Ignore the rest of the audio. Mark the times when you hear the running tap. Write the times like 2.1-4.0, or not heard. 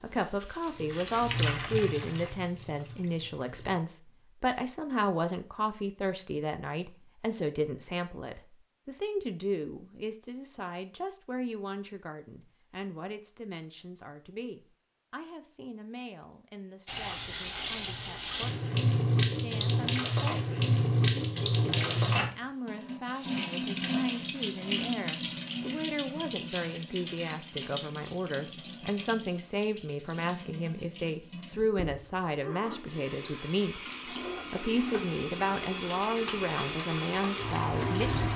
0.0-3.8, 16.9-38.3.